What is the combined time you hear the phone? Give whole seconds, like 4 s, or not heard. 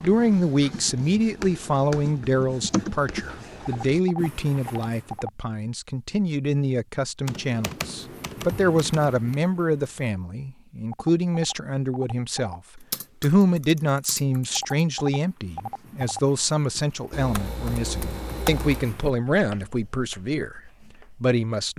5 s.